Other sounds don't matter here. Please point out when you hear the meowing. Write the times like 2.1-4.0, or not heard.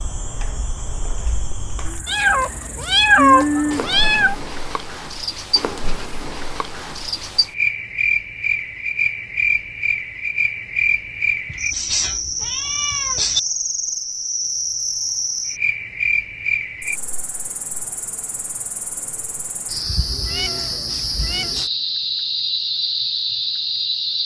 2.0-4.3, 11.5-13.4, 20.2-21.6.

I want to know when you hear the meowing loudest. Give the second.
3 s.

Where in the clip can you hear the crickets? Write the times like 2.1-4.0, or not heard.
0.0-24.2.